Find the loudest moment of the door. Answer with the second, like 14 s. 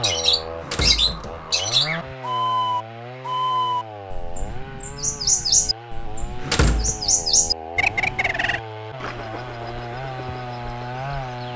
7 s.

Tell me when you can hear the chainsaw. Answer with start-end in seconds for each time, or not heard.
0.0-11.5.